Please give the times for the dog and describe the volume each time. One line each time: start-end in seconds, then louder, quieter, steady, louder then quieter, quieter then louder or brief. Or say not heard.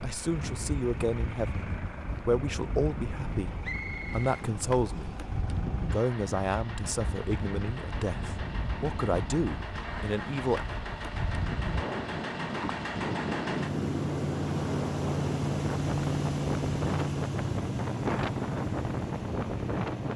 not heard.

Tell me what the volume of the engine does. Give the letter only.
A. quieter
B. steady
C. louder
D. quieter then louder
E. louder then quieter
C.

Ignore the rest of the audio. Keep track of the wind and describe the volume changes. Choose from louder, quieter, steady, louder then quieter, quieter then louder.
louder.